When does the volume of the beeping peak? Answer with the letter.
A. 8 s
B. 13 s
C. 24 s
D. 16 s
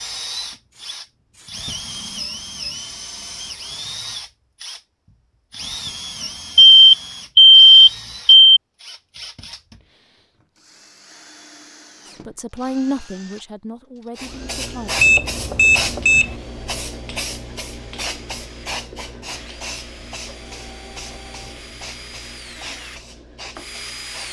A.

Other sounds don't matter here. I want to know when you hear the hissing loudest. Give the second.
15 s.